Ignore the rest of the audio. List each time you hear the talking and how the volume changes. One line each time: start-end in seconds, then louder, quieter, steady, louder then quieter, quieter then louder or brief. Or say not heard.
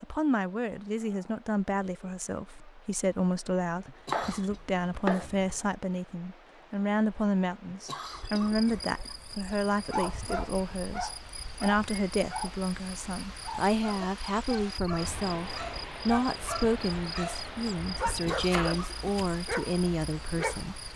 0.0-20.8 steady.